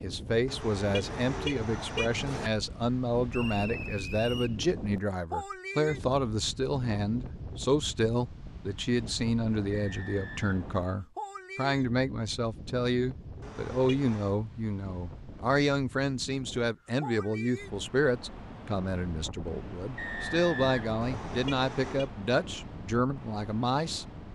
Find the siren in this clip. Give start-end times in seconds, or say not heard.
not heard.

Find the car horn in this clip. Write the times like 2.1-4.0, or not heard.
0.5-2.5, 13.4-14.3, 21.0-22.1.